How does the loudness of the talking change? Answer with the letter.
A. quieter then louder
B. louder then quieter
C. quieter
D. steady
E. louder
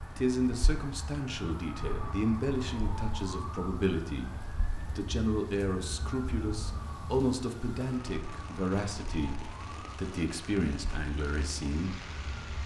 D.